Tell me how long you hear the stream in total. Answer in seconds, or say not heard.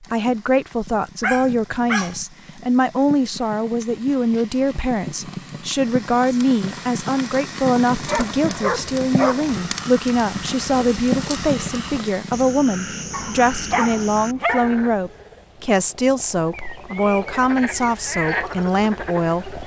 not heard.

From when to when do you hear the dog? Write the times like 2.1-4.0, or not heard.
1.2-2.2, 7.8-9.6, 13.1-14.8.